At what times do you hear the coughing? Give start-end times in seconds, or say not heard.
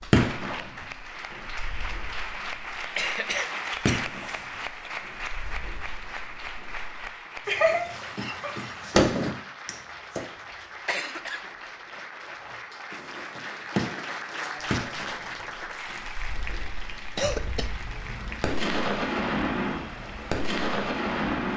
3.0-4.9, 10.8-12.0, 17.1-18.4.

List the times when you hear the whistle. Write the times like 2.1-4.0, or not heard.
not heard.